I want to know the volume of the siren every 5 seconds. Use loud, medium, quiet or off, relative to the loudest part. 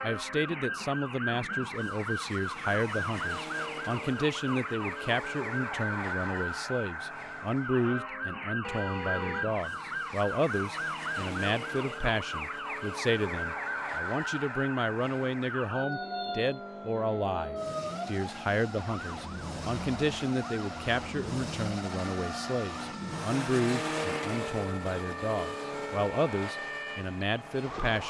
loud, loud, loud, loud, medium, loud.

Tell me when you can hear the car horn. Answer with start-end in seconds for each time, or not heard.
8.6-9.5.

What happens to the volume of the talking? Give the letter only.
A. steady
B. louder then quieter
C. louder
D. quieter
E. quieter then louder
A.